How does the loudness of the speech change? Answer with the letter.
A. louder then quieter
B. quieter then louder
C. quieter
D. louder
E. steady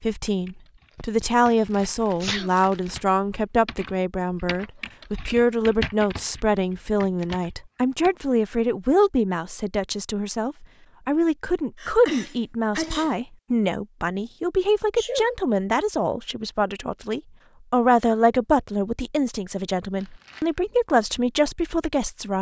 E.